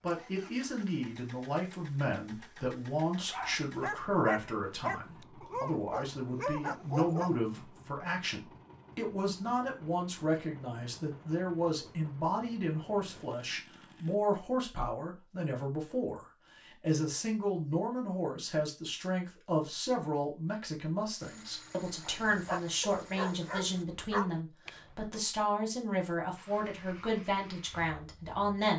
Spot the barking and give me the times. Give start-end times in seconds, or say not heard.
3.3-7.4, 22.0-25.1.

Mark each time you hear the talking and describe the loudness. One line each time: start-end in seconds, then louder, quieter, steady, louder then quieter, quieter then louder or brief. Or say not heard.
0.0-28.7 steady.